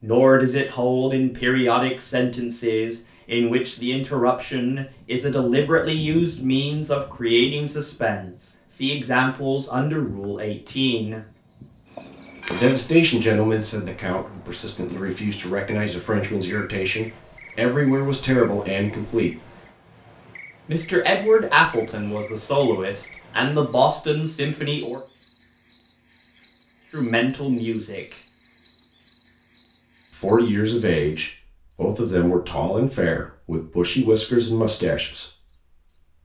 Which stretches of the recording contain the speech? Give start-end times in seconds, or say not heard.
0.0-11.2, 12.5-19.3, 20.6-25.0, 26.9-28.1, 30.1-35.4.